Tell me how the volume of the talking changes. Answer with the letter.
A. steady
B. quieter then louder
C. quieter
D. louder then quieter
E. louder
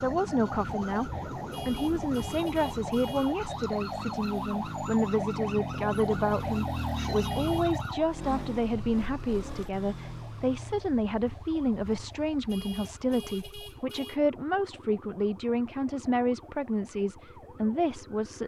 A.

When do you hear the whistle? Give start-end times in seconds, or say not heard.
not heard.